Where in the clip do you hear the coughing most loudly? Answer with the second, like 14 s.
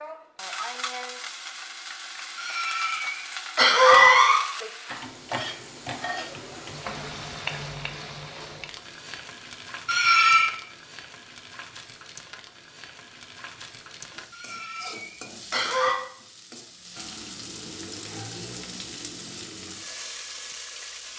4 s.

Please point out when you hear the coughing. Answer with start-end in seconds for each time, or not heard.
2.4-4.4, 9.8-10.5, 14.3-15.9.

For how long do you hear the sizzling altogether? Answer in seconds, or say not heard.
21 s.